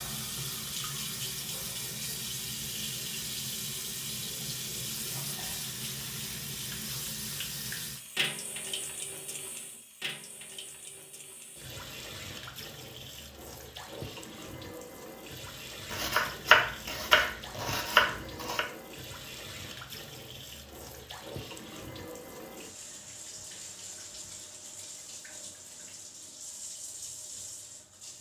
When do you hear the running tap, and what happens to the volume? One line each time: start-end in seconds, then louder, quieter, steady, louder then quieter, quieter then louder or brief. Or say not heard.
0.0-28.1 quieter.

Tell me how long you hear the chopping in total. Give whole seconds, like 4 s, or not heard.
3 s.